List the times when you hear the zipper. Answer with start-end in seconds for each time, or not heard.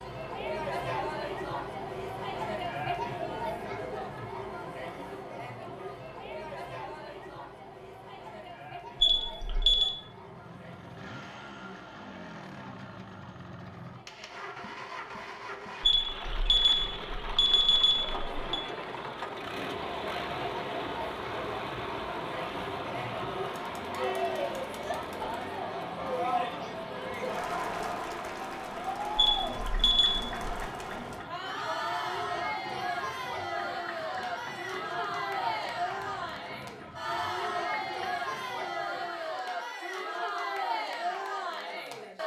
not heard.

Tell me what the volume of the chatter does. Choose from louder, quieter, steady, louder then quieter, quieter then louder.
quieter then louder.